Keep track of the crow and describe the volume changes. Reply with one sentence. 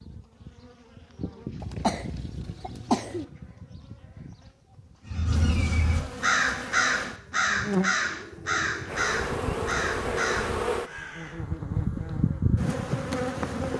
The loudness of the crow goes down.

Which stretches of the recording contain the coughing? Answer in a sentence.
You can hear the coughing from 1.6 to 3.2 s.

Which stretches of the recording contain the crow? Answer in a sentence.
You can hear the crow from 5.0 to 11.4 s.